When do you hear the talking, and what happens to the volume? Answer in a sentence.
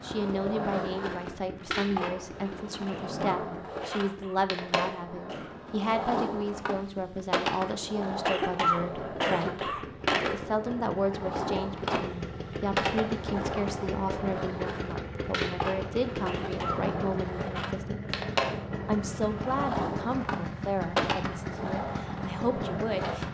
You can hear the talking from 0.0 to 18.1 s, at a steady volume; and from 18.9 to 23.2 s, getting quieter then louder.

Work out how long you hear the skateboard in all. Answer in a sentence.
The skateboard can be heard for 23 seconds in total.